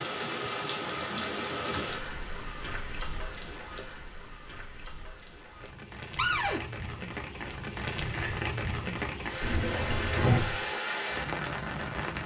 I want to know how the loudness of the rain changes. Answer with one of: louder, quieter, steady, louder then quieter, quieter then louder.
quieter then louder.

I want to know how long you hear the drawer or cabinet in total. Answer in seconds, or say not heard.
3 s.